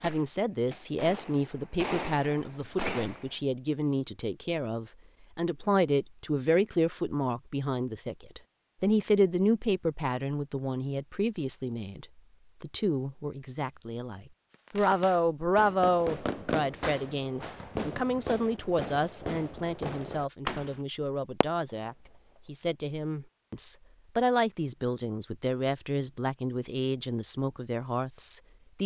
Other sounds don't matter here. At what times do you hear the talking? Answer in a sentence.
The talking can be heard from 0.0 to 28.8 s.